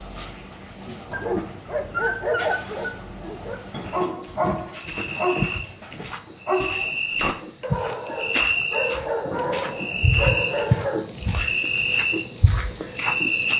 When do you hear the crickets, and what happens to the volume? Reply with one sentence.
You can hear the crickets from 0.0 to 13.5 s, getting louder.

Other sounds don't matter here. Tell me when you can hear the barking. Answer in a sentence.
The barking can be heard from 1.1 to 11.1 s.